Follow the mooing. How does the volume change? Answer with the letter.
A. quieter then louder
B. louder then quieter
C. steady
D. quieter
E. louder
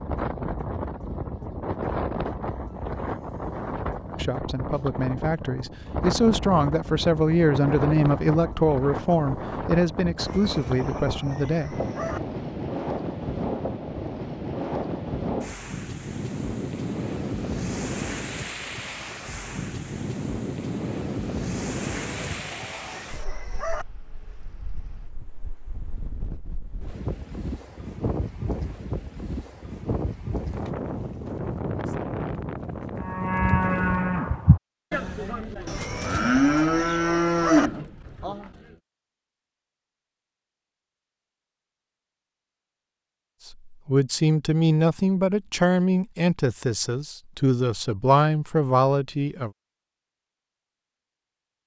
A.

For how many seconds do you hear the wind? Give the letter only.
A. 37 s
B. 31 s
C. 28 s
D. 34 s
D.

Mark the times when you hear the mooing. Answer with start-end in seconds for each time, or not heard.
33.0-38.5.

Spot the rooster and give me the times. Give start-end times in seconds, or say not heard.
10.2-12.2, 21.9-23.9, 35.6-37.7.